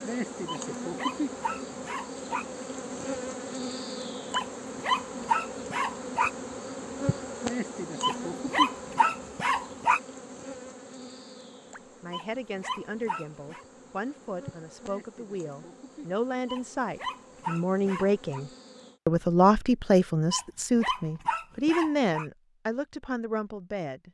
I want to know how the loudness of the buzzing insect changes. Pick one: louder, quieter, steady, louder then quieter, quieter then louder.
quieter.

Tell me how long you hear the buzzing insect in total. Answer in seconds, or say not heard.
19 s.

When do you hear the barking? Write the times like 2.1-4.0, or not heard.
0.5-2.5, 4.3-6.3, 8.0-10.0, 12.1-13.7, 16.4-18.4, 20.3-22.2.